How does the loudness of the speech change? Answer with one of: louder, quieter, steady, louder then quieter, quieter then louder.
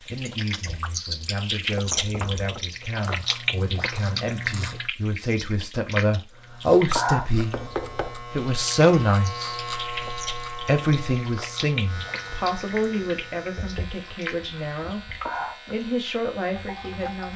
louder then quieter.